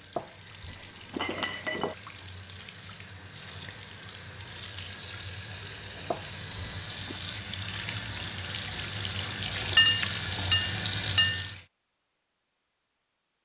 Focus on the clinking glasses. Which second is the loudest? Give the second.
10 s.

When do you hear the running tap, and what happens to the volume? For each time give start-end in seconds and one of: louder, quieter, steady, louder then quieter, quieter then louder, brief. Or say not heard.
0.0-11.7 louder.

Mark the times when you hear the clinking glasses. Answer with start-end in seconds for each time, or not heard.
0.1-1.9, 6.1-7.2, 9.8-11.4.